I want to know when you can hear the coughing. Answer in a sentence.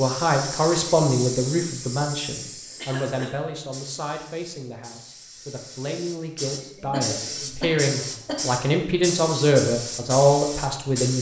You can hear the coughing from 2.8 to 3.4 s and from 6.6 to 8.5 s.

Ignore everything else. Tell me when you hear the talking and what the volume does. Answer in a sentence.
You can hear the talking from 0.0 to 11.1 s, getting quieter then louder.